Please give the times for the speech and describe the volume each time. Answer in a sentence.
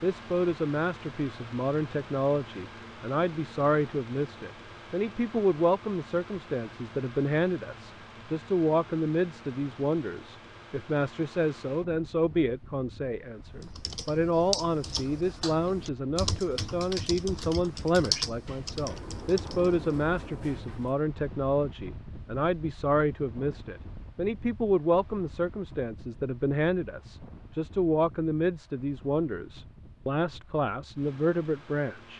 You can hear the speech from 0.0 to 32.1 s, at a steady volume.